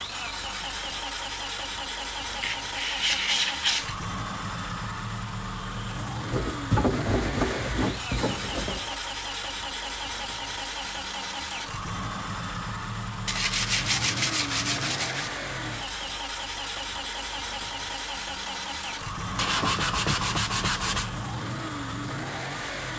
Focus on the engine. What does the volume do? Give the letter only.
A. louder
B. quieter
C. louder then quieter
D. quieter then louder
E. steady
E.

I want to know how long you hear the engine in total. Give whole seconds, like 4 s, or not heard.
23 s.